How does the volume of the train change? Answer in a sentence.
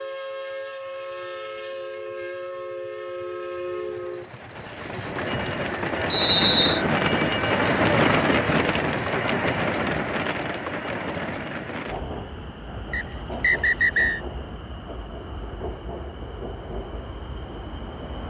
The loudness of the train goes up, then down.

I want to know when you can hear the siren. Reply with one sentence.
You can't hear the siren here.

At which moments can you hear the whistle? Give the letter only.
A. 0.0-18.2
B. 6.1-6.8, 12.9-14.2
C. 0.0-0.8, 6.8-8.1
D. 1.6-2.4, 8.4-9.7
B.